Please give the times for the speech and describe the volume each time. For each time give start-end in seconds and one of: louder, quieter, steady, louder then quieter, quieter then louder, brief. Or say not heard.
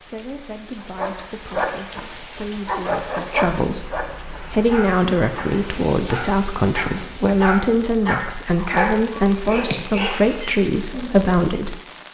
0.0-11.8 louder.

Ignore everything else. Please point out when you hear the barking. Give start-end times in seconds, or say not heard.
0.8-11.2.